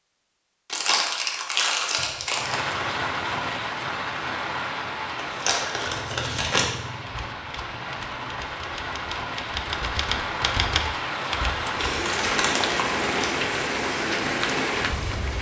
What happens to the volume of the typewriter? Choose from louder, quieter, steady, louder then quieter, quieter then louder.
louder.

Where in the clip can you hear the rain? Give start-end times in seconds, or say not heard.
2.3-15.3.